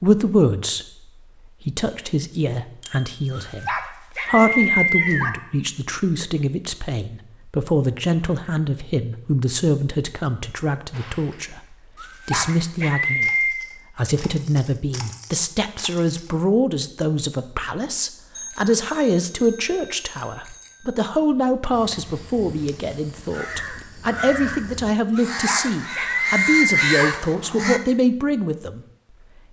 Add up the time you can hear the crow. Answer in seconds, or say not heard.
6 s.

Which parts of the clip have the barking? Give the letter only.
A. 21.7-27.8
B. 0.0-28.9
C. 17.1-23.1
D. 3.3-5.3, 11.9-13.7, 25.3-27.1
D.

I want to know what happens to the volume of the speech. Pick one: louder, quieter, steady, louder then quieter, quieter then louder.
steady.